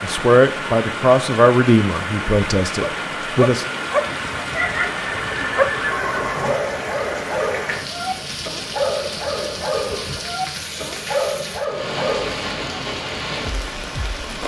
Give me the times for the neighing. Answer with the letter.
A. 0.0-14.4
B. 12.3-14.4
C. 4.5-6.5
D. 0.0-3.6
C.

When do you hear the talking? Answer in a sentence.
The talking can be heard from 0.0 to 3.6 s.